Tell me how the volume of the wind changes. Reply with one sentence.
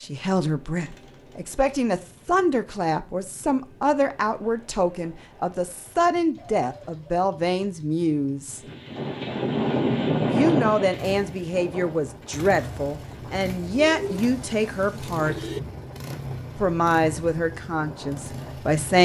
The volume of the wind goes down.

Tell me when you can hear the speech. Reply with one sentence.
The speech can be heard from 0.0 to 8.6 s, from 10.2 to 15.4 s and from 16.6 to 19.0 s.